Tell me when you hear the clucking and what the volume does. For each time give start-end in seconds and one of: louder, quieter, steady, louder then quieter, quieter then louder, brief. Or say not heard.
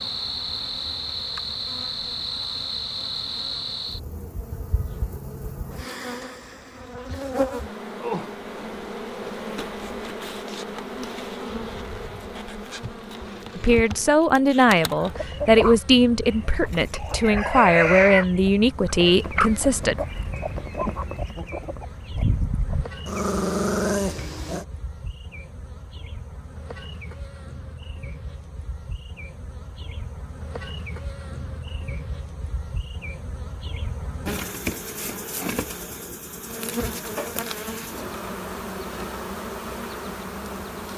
15.2-22.9 louder then quieter.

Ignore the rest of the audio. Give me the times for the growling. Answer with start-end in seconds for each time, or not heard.
23.1-24.6.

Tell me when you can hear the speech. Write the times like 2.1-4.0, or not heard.
13.6-19.9.